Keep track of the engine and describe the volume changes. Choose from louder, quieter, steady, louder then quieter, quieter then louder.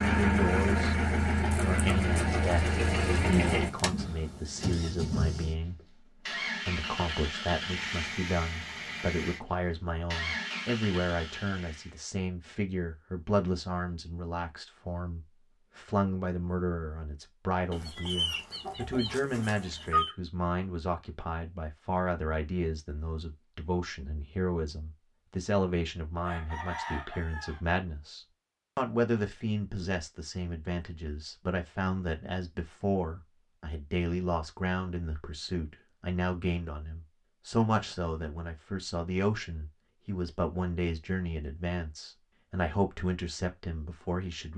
quieter.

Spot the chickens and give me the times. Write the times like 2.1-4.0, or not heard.
17.7-20.1, 26.2-27.6.